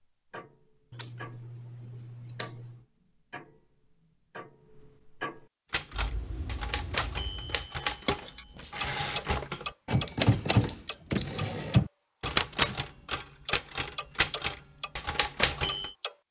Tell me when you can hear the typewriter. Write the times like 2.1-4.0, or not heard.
5.7-15.9.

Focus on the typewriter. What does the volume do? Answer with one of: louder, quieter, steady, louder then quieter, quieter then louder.
louder then quieter.